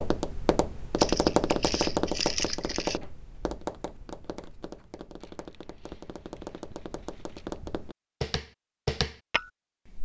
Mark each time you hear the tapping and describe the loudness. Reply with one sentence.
The tapping can be heard from 0.0 to 10.0 s, getting quieter then louder.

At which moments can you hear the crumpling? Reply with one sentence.
The crumpling can be heard from 0.9 to 3.0 s and from 5.2 to 7.6 s.